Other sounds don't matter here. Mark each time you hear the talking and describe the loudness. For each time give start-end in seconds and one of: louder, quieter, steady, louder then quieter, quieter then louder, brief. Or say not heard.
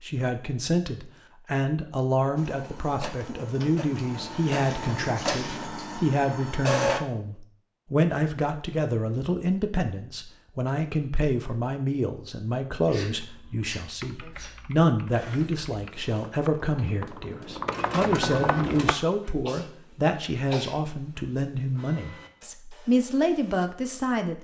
0.0-24.3 steady.